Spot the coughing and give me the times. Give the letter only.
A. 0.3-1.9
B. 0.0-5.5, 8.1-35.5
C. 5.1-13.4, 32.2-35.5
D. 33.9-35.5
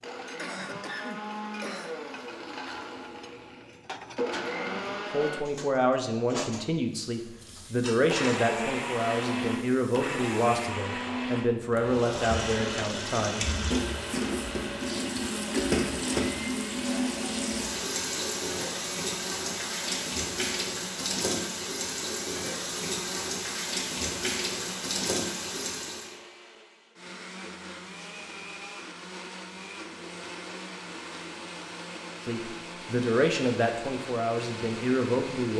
A.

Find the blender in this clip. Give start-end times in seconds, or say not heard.
0.0-5.5, 8.1-35.5.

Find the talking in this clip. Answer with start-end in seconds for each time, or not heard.
5.1-13.4, 32.2-35.5.